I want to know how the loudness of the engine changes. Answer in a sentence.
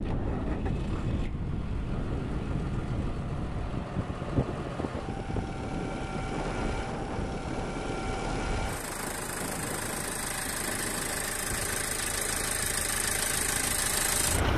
The loudness of the engine goes up.